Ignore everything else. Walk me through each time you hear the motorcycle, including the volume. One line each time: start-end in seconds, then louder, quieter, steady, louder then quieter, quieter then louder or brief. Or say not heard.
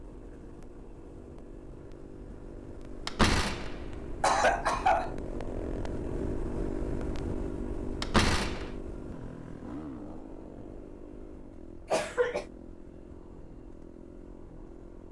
0.0-15.0 louder then quieter.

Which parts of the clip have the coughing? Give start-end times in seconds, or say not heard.
4.2-5.2, 11.9-12.4.